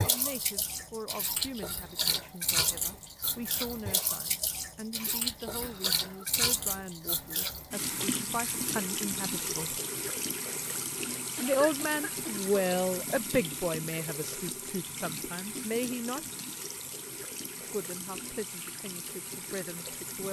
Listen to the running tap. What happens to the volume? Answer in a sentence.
The loudness of the running tap goes down.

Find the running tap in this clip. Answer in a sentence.
You can hear the running tap from 0.0 to 20.2 s.